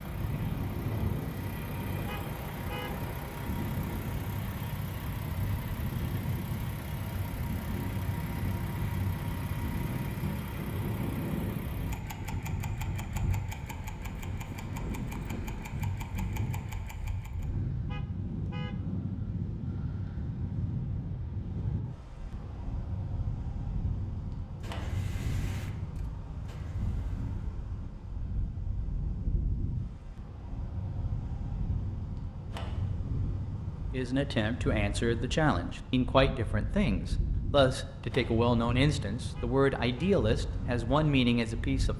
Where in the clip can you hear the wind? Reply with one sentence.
The wind can be heard from 0.0 to 41.9 s.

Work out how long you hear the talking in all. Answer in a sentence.
The talking can be heard for 8 seconds in total.